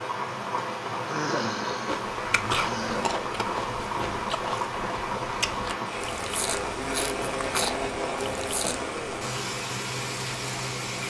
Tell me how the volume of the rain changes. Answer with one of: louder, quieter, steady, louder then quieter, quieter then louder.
steady.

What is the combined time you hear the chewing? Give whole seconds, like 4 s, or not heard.
7 s.